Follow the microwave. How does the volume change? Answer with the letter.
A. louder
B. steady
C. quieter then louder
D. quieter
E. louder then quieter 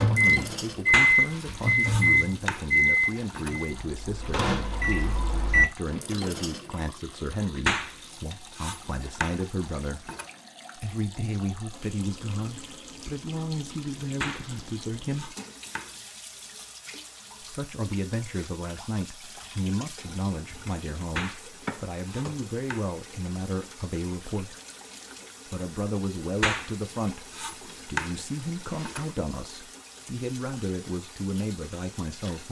C.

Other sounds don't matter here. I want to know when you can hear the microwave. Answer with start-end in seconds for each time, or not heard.
0.0-5.7.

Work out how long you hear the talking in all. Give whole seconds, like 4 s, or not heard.
29 s.